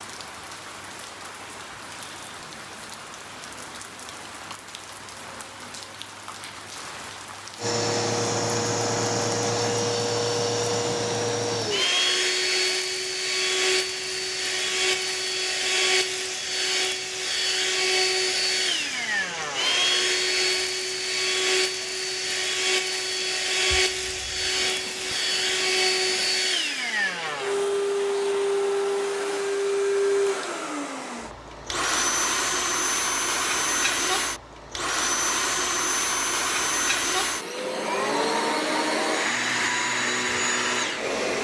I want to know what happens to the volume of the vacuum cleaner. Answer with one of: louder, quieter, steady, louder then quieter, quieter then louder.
steady.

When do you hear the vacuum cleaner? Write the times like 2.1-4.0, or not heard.
7.5-41.3.